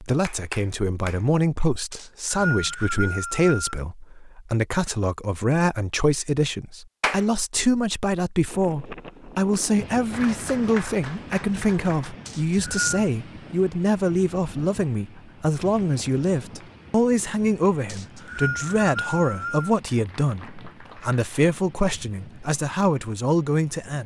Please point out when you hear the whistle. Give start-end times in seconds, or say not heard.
1.9-3.8, 12.2-13.0, 17.9-19.8.